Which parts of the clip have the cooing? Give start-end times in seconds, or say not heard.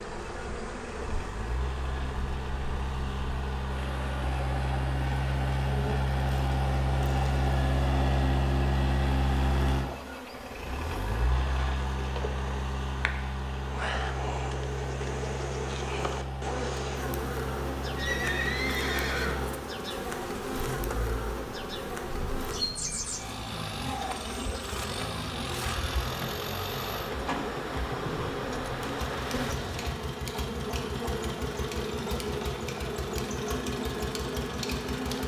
not heard.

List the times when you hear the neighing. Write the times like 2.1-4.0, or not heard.
17.9-19.4.